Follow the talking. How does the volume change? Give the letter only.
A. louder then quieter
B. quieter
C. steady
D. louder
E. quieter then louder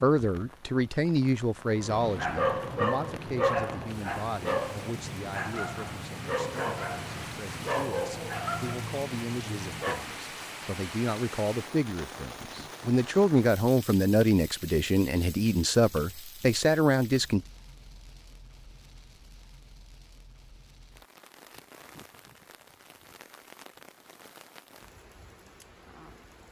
E.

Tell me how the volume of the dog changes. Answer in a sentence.
The loudness of the dog goes down.